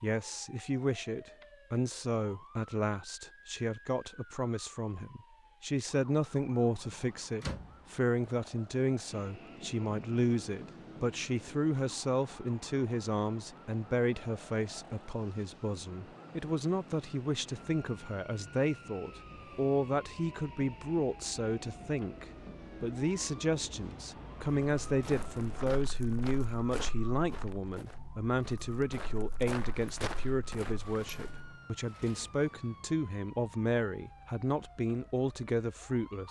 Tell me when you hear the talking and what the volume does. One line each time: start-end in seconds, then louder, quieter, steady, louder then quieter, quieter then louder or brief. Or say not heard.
0.0-36.2 steady.